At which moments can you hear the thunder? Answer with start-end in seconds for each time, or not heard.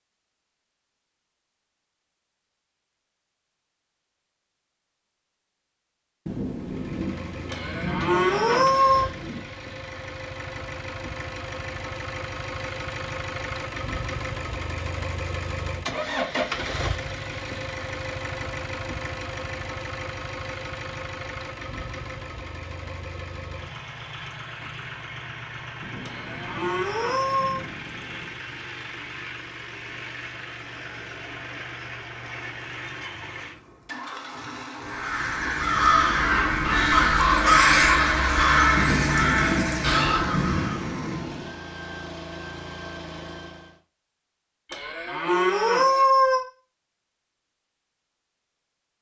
6.2-9.4, 25.8-28.4, 38.8-41.5.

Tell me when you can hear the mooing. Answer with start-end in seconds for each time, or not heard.
7.5-9.1, 26.0-27.6, 44.7-46.5.